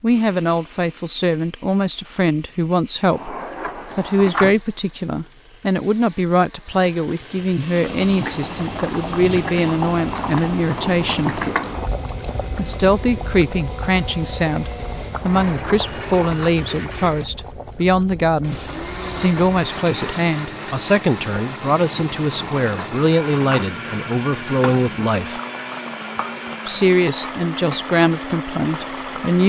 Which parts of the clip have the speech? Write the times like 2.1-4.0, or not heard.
0.0-3.4, 4.0-11.4, 12.5-25.4, 26.6-29.4.